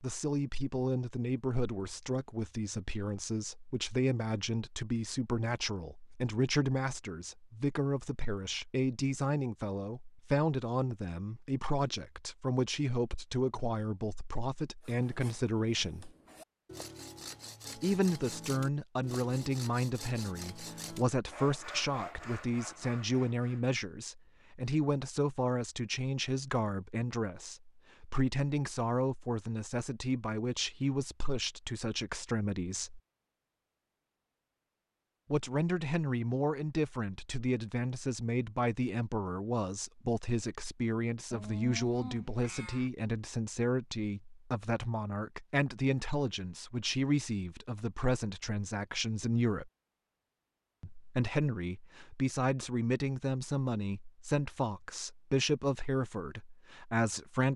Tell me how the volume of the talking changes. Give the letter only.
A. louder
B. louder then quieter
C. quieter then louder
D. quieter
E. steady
E.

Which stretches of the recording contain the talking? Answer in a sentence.
The talking can be heard from 0.0 to 16.1 s, from 17.8 to 33.0 s, from 35.3 to 49.7 s and from 50.8 to 57.5 s.